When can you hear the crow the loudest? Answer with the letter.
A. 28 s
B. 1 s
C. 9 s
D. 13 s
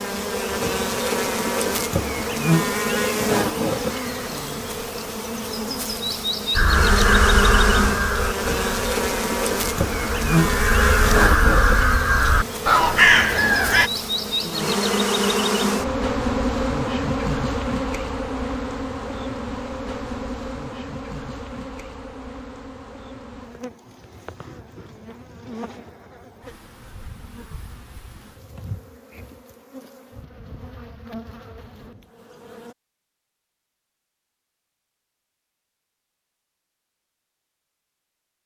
D.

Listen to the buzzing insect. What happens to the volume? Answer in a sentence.
The volume of the buzzing insect goes down.